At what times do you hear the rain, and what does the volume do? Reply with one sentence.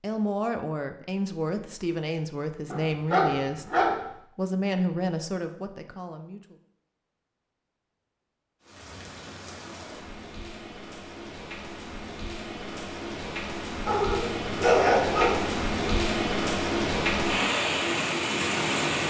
The rain can be heard from 8.6 to 19.0 s, getting louder.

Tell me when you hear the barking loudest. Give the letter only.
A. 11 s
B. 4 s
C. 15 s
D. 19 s
C.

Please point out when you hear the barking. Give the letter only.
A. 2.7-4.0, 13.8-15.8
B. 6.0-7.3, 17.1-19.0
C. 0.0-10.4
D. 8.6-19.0
A.